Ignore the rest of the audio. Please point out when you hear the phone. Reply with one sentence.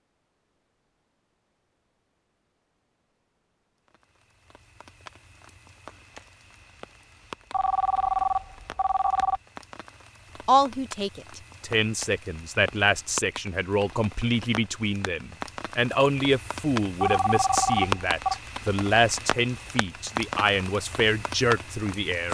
The phone can be heard from 7.5 to 9.4 s and from 17.0 to 18.4 s.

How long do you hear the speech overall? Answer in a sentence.
You can hear the speech for 12 seconds altogether.